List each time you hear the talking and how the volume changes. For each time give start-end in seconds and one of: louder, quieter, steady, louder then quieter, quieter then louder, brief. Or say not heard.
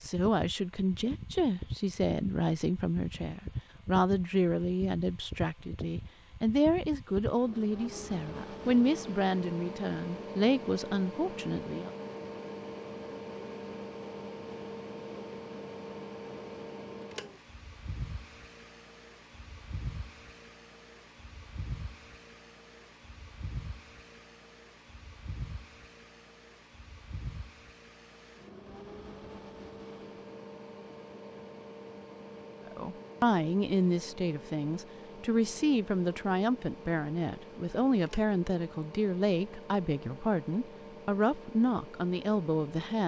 0.0-11.9 steady
32.6-43.0 steady.